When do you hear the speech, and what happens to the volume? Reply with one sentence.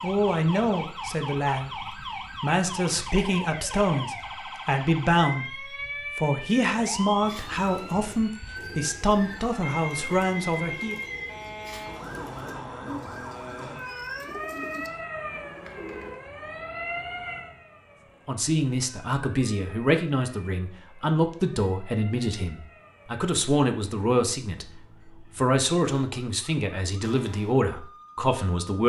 The speech can be heard from 0.0 to 11.0 s, at a steady volume; and from 18.2 to 28.8 s, at a steady volume.